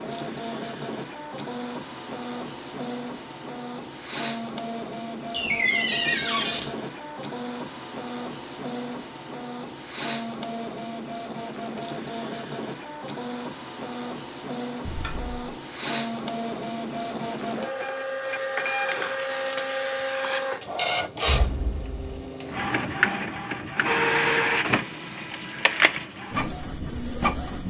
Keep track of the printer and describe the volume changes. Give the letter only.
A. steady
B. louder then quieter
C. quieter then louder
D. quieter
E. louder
E.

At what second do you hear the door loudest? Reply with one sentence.
The volume of the door peaks at 6 seconds.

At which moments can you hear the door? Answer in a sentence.
You can hear the door from 5.3 to 6.7 s, from 14.8 to 15.3 s and from 21.2 to 22.3 s.